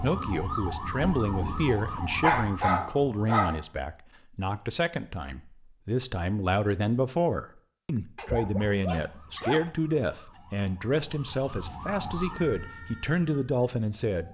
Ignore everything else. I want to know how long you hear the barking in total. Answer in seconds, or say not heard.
3 s.